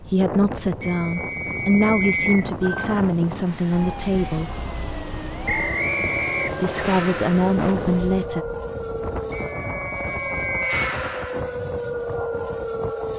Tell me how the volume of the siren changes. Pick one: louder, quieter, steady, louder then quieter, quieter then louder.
louder.